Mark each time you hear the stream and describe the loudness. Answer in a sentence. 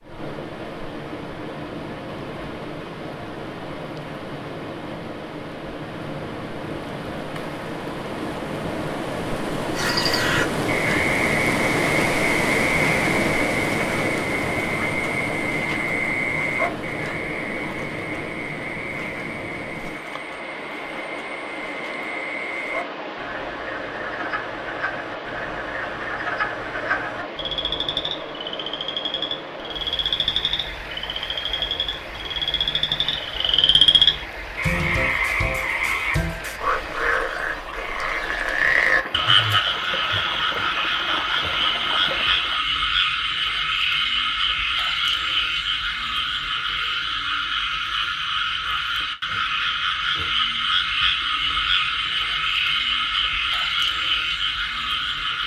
The stream can be heard from 0.0 to 42.6 s, getting louder then quieter.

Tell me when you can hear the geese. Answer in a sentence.
You can't hear the geese here.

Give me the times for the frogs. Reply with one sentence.
You can hear the frogs from 9.8 to 55.4 s.